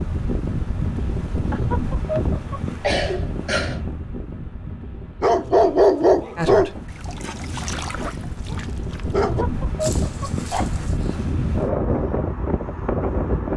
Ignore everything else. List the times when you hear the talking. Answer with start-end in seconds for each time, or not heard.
6.3-6.8.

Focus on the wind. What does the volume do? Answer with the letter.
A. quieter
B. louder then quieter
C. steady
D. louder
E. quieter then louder
E.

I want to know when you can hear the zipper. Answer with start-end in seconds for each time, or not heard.
not heard.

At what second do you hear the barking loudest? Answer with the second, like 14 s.
6 s.